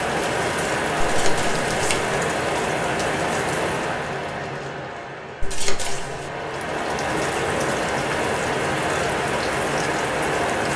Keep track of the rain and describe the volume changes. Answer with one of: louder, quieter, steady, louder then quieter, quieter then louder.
quieter then louder.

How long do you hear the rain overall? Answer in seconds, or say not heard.
11 s.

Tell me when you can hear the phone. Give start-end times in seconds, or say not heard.
not heard.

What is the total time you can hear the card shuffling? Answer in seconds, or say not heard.
2 s.